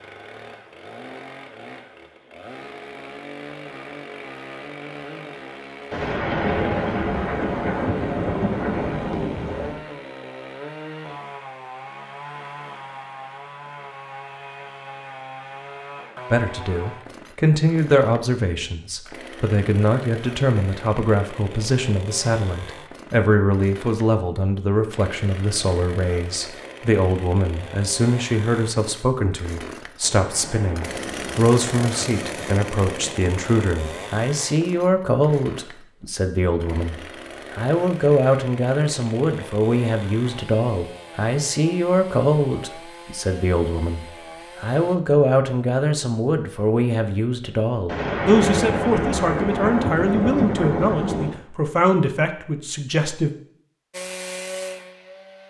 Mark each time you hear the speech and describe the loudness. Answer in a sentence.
The speech can be heard from 16.3 to 53.3 s, at a steady volume.